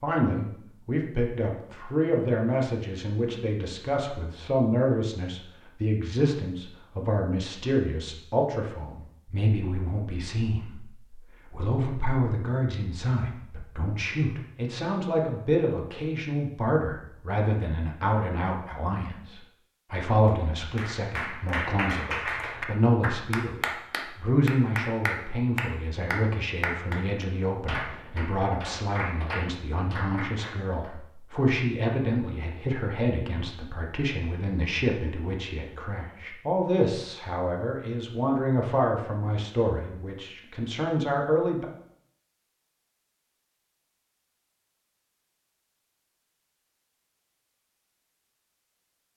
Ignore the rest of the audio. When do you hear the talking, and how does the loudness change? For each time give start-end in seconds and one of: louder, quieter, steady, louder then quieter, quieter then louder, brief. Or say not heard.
0.0-41.6 steady.